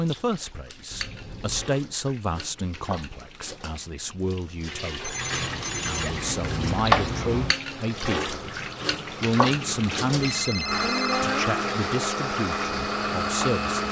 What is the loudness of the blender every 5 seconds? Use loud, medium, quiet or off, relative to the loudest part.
off, quiet, loud.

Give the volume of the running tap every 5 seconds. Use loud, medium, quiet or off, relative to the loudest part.
quiet, loud, medium.